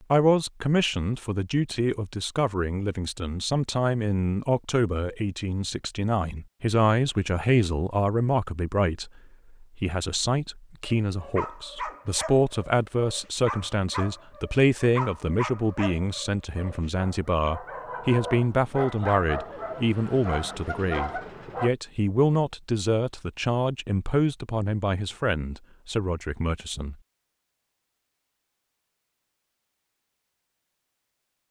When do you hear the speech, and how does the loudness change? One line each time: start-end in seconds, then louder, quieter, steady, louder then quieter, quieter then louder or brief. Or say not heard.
0.1-26.9 steady.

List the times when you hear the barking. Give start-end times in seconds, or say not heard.
10.8-21.7.